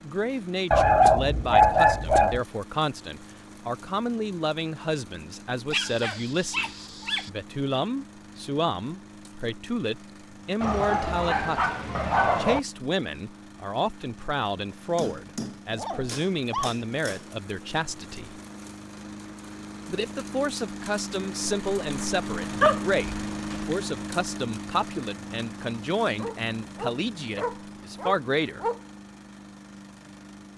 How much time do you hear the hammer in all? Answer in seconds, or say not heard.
2 s.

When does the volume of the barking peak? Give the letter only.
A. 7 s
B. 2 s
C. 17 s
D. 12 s
B.